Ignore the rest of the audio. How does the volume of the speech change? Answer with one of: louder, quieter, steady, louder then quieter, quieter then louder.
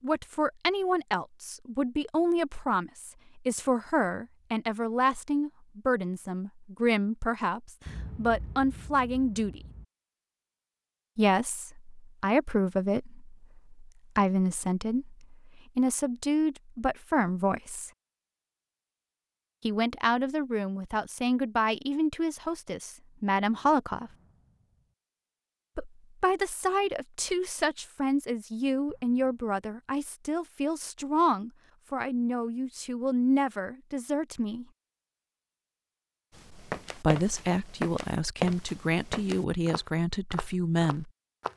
steady.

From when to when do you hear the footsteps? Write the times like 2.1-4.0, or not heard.
36.3-41.5.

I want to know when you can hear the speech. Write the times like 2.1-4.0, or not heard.
0.0-9.6, 11.2-17.9, 19.6-24.1, 25.8-34.6, 37.0-41.1.